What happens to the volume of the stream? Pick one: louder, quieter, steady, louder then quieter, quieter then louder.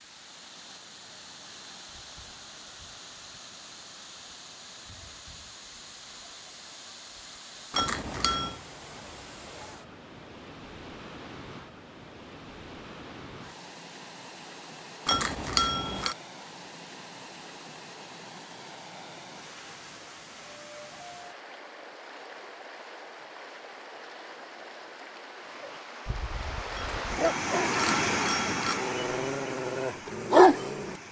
louder.